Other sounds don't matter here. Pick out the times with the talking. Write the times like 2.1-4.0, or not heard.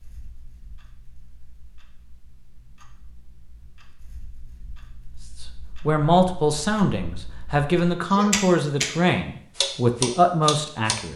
5.4-11.1.